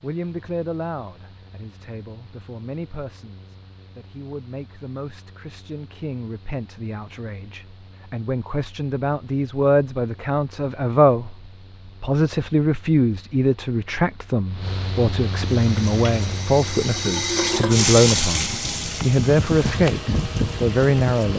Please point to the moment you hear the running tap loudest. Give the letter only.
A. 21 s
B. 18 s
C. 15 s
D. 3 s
B.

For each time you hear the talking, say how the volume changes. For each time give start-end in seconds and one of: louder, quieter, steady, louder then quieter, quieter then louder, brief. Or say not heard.
0.0-21.3 louder.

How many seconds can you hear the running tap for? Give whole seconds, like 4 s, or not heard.
6 s.